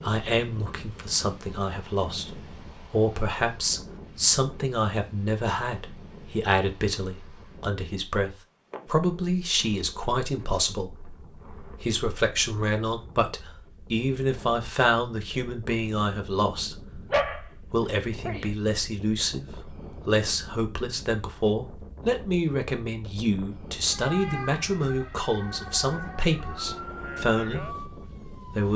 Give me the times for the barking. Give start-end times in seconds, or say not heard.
17.1-18.4.